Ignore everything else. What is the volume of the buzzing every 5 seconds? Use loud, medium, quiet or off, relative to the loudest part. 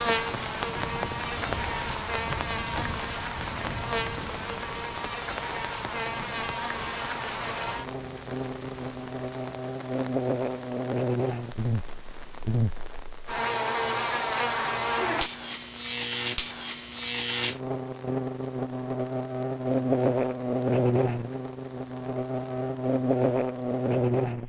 medium, medium, loud, loud, loud.